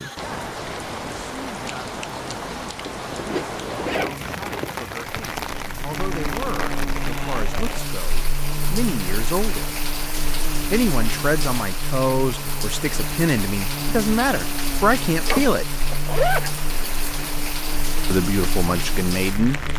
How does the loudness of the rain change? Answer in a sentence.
The loudness of the rain stays about the same.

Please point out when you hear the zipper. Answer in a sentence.
The zipper can be heard from 2.9 to 4.7 s and from 15.2 to 16.5 s.